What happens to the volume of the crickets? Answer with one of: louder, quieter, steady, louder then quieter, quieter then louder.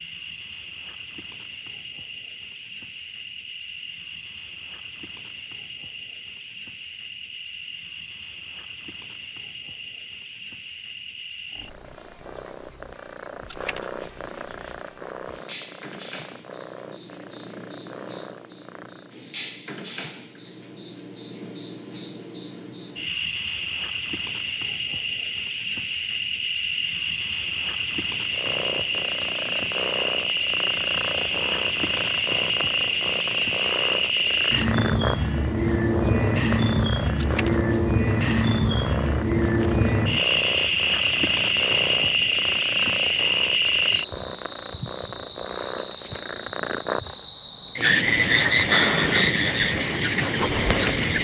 louder.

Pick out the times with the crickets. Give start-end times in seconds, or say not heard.
0.0-51.1.